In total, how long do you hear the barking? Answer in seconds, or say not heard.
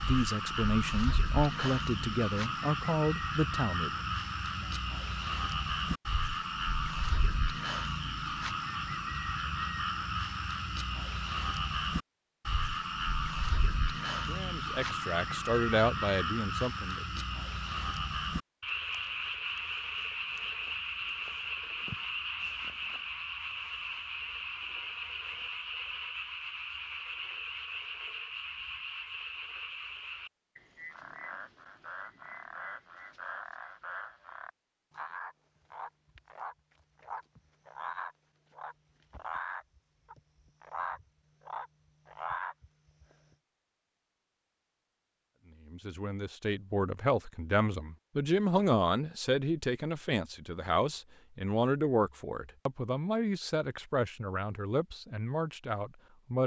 not heard.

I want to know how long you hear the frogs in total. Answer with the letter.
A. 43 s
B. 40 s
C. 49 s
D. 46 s
A.